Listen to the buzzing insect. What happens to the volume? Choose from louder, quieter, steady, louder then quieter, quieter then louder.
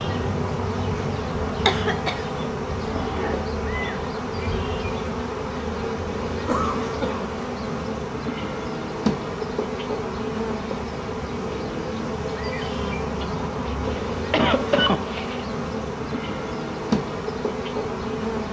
steady.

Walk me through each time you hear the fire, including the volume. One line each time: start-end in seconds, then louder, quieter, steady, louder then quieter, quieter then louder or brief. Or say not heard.
not heard.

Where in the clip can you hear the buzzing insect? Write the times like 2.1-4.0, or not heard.
0.0-18.4.